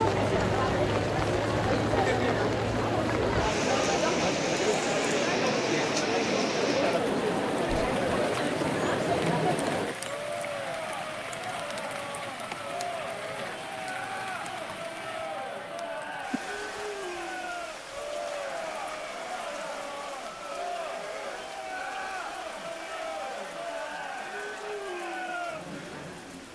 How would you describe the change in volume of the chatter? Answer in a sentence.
The volume of the chatter goes down.